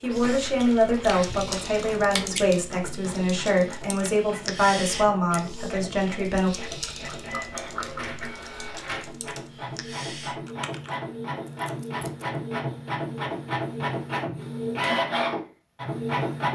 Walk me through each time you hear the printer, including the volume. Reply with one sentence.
The printer can be heard from 0.0 to 16.5 s, getting louder.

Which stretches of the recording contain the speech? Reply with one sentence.
The speech can be heard from 0.0 to 6.5 s.